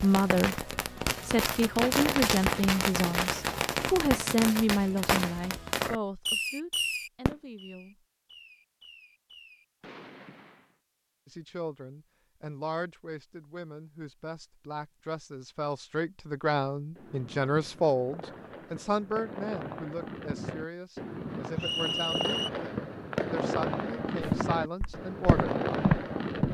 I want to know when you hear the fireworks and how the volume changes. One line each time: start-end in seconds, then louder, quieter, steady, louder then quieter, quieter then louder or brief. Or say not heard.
0.0-10.8 quieter
16.9-26.5 louder.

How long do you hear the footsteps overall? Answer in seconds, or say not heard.
2 s.